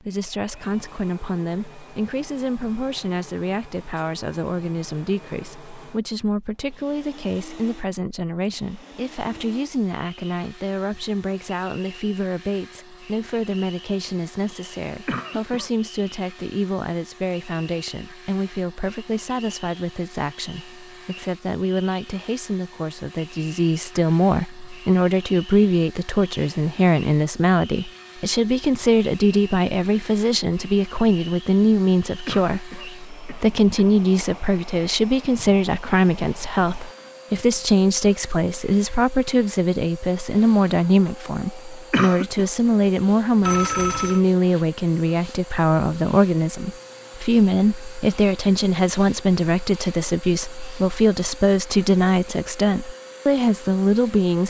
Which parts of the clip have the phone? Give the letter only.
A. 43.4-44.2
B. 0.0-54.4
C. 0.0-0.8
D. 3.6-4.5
A.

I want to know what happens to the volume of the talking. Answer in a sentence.
The volume of the talking goes up.